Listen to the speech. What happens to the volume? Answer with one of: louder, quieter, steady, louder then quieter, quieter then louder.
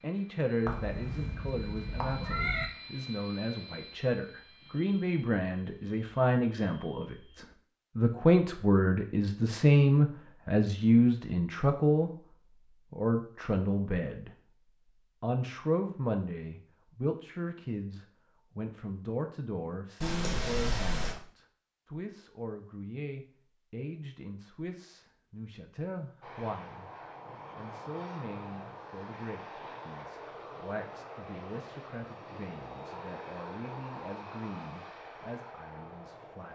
louder then quieter.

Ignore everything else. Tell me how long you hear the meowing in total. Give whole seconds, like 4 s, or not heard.
3 s.